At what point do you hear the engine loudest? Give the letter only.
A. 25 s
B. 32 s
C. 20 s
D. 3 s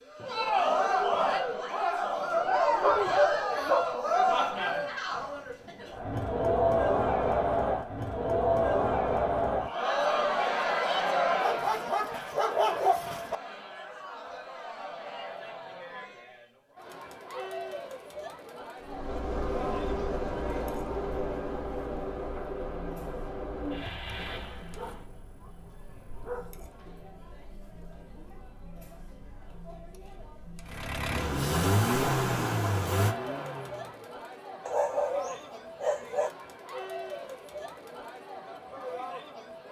B.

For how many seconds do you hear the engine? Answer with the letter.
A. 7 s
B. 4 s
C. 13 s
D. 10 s
D.